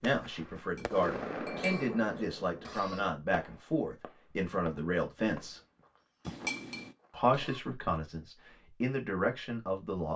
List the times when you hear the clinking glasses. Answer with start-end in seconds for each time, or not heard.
0.6-1.9, 6.2-7.0.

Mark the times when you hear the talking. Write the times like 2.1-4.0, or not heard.
0.0-5.6, 7.1-10.1.